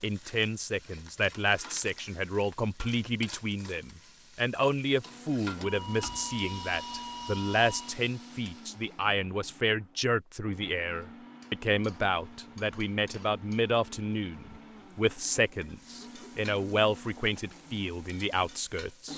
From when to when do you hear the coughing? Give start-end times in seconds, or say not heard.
15.7-16.4.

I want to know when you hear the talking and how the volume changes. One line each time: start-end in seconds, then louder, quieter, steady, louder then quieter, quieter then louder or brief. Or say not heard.
0.0-19.1 steady.